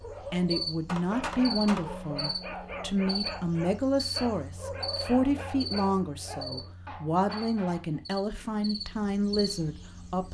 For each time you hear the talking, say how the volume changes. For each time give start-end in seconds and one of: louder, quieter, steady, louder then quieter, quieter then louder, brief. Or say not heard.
0.3-10.2 steady.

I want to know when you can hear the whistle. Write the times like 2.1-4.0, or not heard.
not heard.